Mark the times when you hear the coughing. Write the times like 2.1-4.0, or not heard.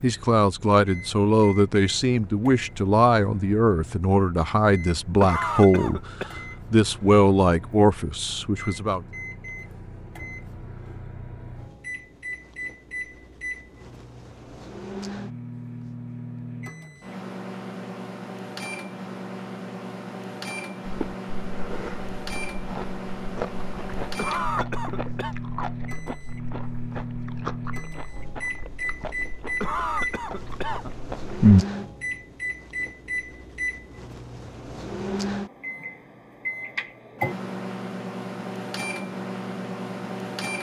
5.2-6.3, 24.1-25.4, 29.6-30.9.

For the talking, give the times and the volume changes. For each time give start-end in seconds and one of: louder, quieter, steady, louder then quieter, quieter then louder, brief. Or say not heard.
0.0-9.0 steady.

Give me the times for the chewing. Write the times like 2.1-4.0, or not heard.
20.9-31.6.